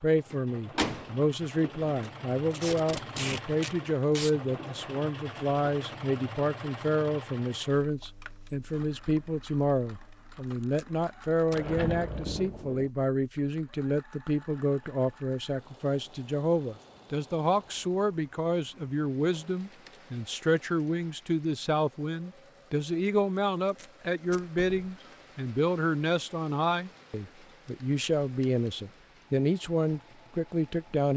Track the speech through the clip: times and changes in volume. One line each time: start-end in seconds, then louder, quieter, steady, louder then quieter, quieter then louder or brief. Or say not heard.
0.0-31.1 steady.